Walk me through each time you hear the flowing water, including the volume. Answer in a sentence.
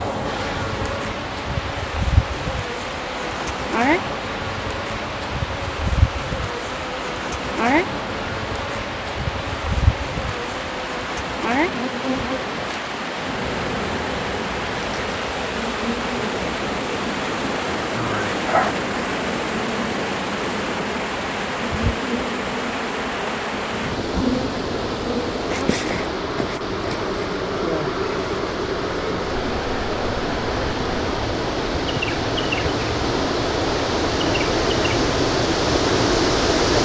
The flowing water can be heard from 0.0 to 36.8 s, getting louder.